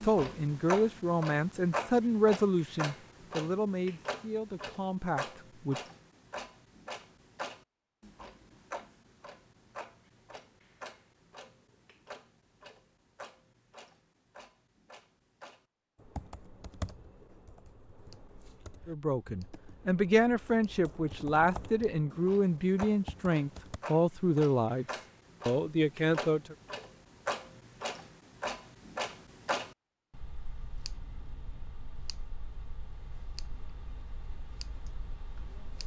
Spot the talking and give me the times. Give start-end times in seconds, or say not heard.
0.0-5.8, 18.9-24.9, 25.4-26.6.